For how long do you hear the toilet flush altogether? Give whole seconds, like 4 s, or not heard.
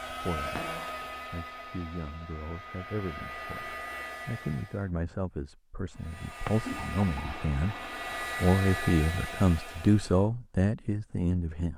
2 s.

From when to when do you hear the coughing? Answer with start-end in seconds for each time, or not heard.
not heard.